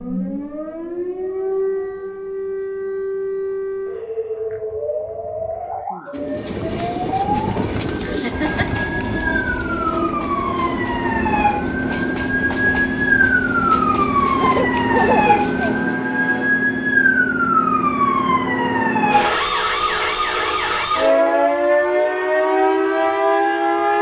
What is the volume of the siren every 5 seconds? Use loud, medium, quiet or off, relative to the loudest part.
medium, medium, loud, loud, loud.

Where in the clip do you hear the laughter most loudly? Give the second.
15 s.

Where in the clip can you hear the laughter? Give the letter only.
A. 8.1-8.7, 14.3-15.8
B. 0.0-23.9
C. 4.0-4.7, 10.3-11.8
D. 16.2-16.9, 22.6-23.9
A.